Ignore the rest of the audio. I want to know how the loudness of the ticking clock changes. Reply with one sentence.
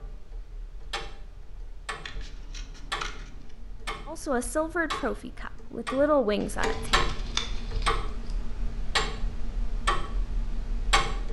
The loudness of the ticking clock goes up.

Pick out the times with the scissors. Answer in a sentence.
You can hear the scissors from 2.0 to 3.5 s and from 6.4 to 8.3 s.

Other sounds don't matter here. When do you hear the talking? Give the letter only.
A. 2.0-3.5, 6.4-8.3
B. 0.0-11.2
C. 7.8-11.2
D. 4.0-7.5
D.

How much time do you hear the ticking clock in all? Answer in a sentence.
The ticking clock can be heard for 11 seconds in total.